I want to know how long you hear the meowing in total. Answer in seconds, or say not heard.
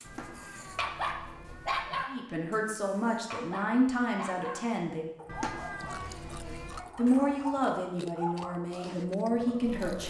4 s.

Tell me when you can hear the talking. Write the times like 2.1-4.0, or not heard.
2.0-5.1, 6.5-10.0.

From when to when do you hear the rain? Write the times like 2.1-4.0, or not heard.
not heard.